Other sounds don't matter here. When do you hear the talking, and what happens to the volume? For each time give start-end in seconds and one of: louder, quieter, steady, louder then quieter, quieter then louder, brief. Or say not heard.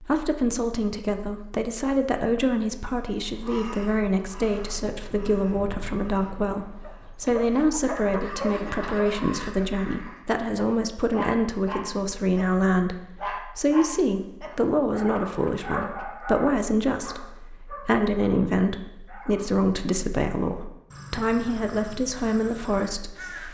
0.0-23.4 steady.